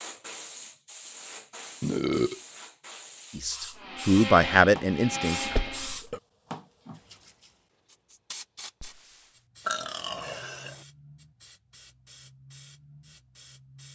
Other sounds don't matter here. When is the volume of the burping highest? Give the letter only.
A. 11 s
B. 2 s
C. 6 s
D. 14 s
B.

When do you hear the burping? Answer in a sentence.
You can hear the burping from 1.8 to 2.4 s, from 5.4 to 6.2 s and from 9.7 to 10.8 s.